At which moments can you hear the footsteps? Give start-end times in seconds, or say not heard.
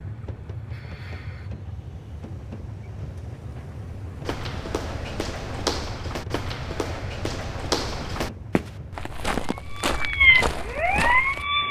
4.2-11.4.